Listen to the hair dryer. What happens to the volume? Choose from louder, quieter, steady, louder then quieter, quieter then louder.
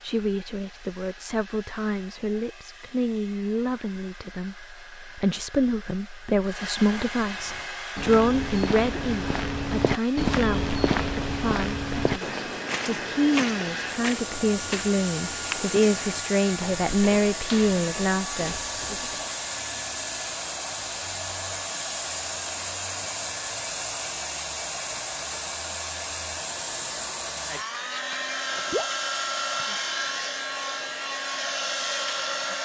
louder.